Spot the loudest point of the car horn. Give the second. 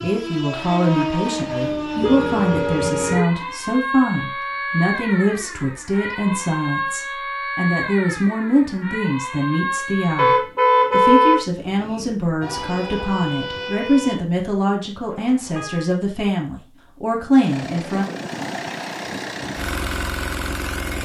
11 s.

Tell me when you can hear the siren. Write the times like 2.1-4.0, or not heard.
0.0-10.3, 12.4-14.2.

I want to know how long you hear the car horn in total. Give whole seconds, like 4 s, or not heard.
4 s.